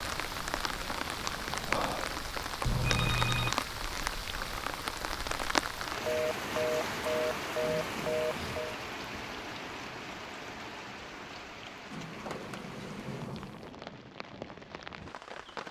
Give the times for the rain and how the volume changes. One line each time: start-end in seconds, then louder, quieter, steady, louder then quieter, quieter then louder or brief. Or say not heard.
0.0-15.6 quieter.